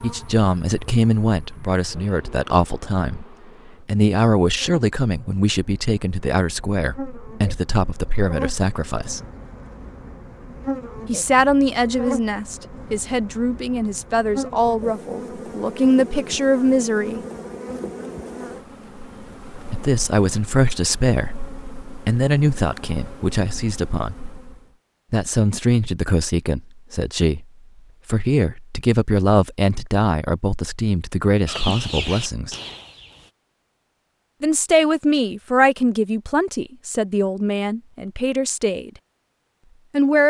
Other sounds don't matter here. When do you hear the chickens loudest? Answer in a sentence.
The volume of the chickens peaks at 32 seconds.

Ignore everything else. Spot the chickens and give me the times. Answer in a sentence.
You can hear the chickens from 31.4 to 33.3 s.